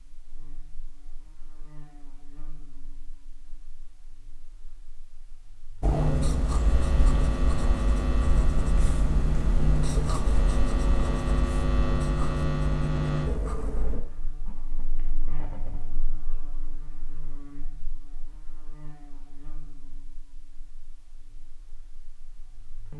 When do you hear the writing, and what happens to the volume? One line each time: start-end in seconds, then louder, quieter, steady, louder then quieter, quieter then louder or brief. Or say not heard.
5.8-16.0 quieter.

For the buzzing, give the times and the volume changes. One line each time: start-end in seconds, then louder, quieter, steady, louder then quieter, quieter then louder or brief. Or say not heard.
0.0-22.9 louder then quieter.